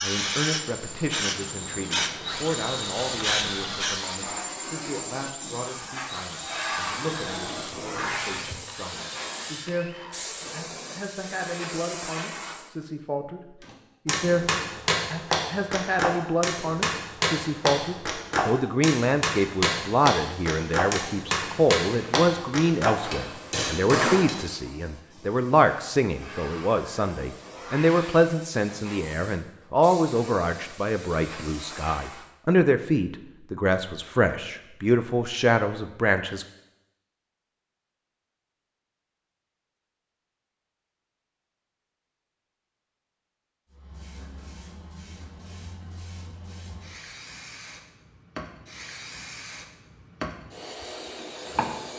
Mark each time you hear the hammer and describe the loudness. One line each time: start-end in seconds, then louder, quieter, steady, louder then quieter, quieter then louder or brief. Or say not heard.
13.6-24.4 steady.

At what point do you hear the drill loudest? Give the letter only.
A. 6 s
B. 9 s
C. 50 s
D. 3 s
D.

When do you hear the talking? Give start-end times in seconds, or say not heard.
0.0-36.5.